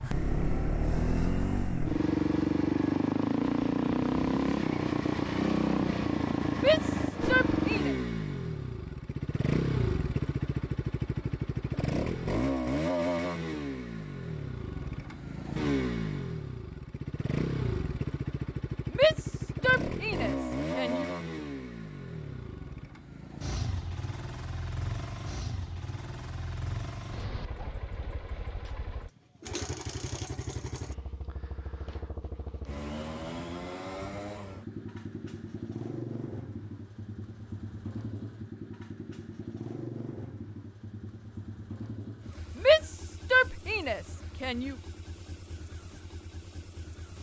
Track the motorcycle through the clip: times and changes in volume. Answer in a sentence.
You can hear the motorcycle from 0.0 to 47.1 s, getting quieter.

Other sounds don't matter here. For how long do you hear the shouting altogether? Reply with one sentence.
The shouting can be heard for 6 seconds in total.